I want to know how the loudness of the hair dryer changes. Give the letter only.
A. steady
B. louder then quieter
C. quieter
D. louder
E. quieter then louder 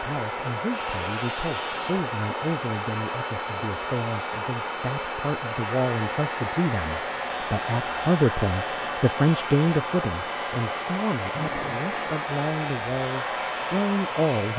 A.